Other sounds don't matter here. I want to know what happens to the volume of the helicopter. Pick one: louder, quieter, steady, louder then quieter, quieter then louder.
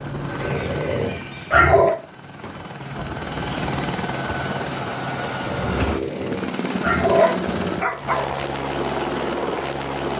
louder.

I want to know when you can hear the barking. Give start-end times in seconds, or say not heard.
0.3-1.9, 5.9-8.3.